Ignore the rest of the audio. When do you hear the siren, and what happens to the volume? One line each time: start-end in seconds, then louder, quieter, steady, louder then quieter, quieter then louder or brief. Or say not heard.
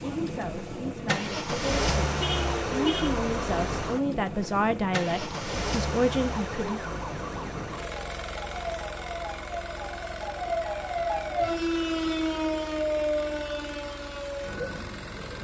0.0-15.3 louder.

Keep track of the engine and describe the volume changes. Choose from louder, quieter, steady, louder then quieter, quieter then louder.
quieter.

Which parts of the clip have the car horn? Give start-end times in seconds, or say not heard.
2.1-3.1.